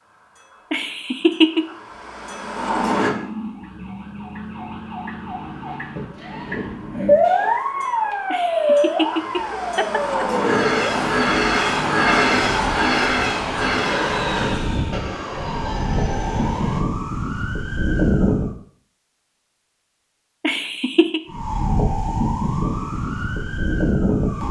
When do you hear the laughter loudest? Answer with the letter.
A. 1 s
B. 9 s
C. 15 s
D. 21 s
A.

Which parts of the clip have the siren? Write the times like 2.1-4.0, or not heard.
2.5-18.5, 21.2-24.4.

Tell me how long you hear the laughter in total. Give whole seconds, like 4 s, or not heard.
4 s.